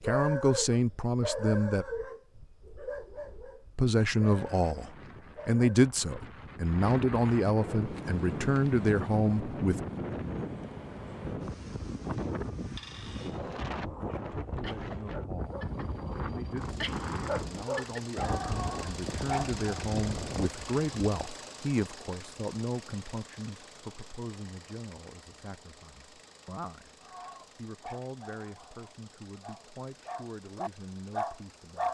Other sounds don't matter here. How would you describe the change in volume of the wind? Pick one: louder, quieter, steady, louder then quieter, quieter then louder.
louder.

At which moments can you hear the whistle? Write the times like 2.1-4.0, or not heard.
not heard.